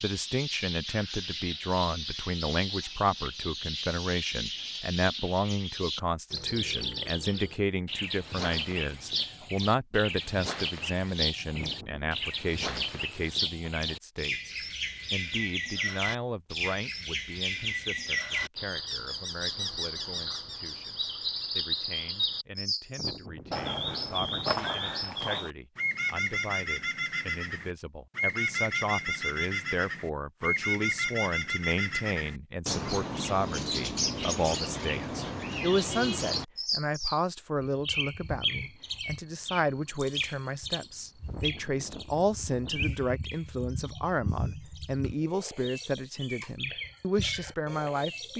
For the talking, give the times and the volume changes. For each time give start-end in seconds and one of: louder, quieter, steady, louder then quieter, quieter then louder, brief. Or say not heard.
0.0-48.3 quieter then louder.